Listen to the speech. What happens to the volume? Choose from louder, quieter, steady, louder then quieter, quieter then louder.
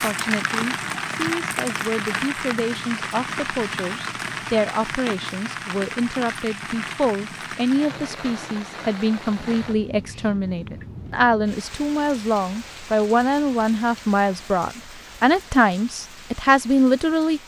louder.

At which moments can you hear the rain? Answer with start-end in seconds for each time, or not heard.
0.0-17.4.